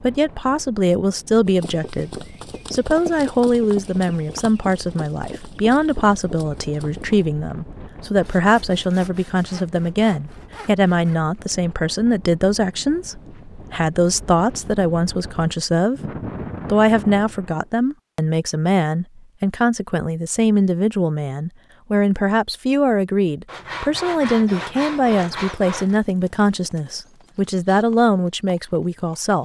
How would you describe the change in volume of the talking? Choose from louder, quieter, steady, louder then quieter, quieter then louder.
steady.